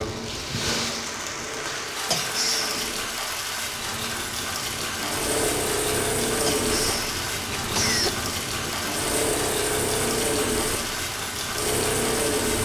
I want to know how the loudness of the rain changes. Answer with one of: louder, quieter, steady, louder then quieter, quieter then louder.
steady.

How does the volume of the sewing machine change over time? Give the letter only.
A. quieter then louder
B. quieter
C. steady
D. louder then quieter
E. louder
E.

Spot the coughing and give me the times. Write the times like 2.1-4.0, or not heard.
2.0-3.1, 6.5-8.2.